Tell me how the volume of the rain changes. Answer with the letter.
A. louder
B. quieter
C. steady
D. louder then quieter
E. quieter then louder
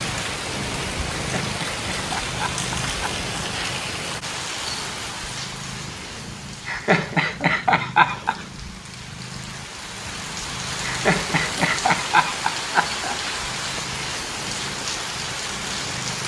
E.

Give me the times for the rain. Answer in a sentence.
You can hear the rain from 0.0 to 16.2 s.